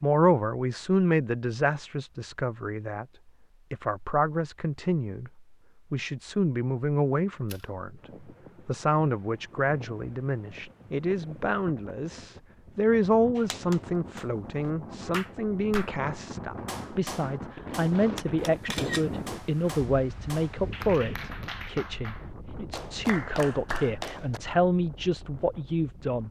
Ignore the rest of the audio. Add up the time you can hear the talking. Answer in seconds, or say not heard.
24 s.